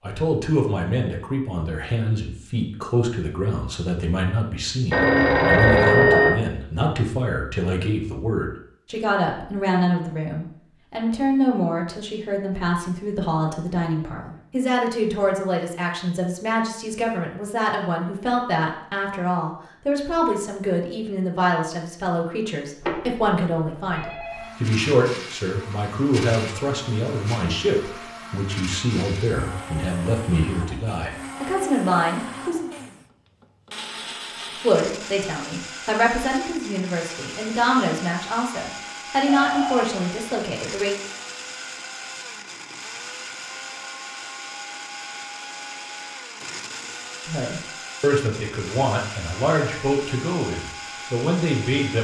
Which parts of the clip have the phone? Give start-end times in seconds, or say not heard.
4.9-6.3, 22.8-24.6, 39.2-40.0.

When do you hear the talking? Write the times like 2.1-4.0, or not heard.
0.0-32.6, 34.6-41.0, 47.2-51.9.